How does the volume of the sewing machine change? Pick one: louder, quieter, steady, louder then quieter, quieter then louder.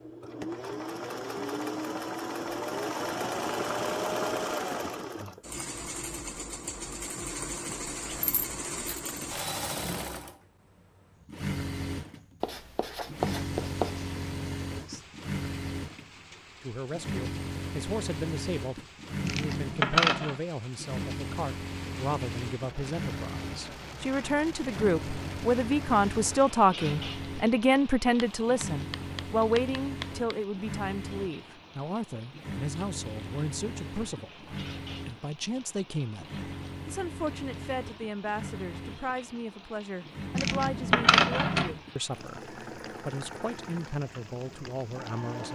quieter.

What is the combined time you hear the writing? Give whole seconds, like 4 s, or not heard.
4 s.